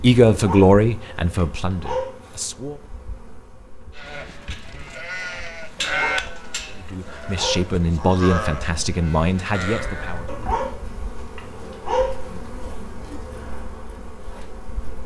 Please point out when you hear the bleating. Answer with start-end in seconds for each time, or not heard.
4.0-10.3.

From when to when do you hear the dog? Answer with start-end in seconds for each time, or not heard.
0.3-2.2, 5.8-7.7, 10.2-12.2.